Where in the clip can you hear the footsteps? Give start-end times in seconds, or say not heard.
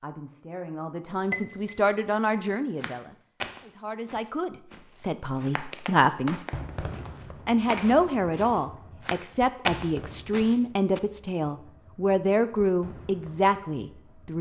2.8-11.0.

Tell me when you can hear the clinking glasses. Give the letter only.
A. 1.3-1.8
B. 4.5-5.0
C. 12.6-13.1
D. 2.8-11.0
A.